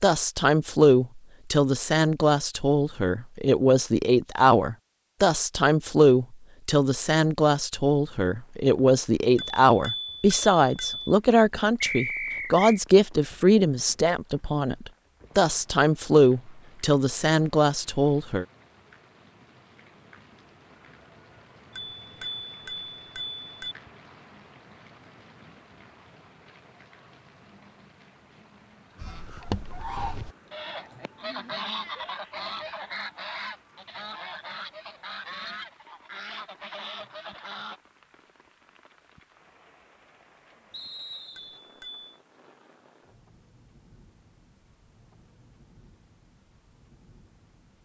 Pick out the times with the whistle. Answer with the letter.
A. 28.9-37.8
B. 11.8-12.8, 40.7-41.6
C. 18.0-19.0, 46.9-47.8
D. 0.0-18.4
B.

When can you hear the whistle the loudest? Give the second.
12 s.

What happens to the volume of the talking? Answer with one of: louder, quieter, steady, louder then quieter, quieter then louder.
steady.